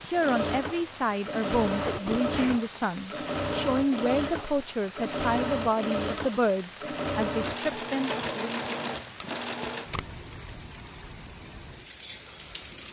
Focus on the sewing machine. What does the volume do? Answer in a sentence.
The loudness of the sewing machine stays about the same.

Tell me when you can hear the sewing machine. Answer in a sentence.
You can hear the sewing machine from 0.1 to 9.9 s.